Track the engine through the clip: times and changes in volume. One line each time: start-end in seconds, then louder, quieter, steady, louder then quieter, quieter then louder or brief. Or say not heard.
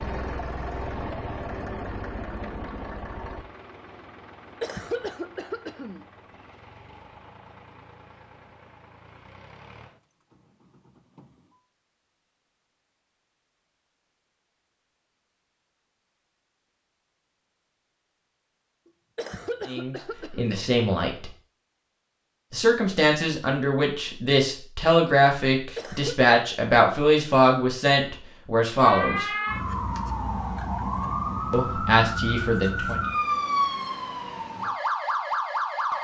0.0-11.6 quieter.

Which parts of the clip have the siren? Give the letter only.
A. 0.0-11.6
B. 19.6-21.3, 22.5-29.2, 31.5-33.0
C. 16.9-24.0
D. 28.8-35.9
D.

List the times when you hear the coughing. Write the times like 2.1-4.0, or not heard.
4.6-6.0, 19.1-20.6, 25.8-26.2.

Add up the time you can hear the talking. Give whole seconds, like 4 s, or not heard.
10 s.